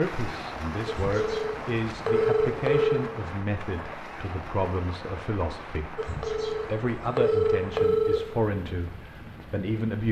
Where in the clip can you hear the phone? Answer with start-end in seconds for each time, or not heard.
0.8-3.0, 6.0-8.2.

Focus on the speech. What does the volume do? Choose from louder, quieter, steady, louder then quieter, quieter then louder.
steady.